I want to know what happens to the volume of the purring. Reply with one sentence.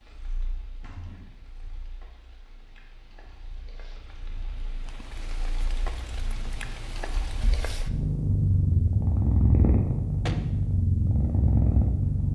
The loudness of the purring goes up.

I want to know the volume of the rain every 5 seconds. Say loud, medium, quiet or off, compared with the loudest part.
quiet, loud, off.